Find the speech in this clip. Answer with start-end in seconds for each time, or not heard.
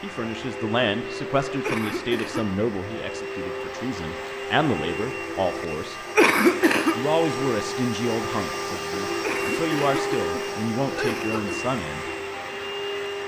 0.0-6.0, 7.0-12.1.